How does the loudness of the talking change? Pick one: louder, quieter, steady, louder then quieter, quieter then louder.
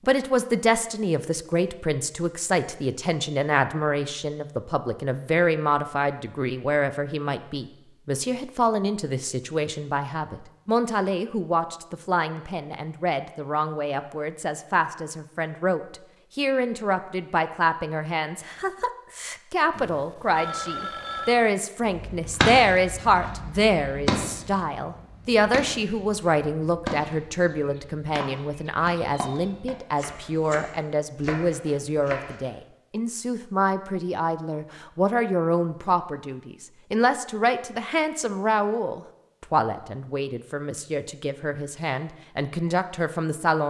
steady.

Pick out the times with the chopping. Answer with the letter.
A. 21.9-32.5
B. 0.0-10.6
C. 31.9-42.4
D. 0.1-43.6
A.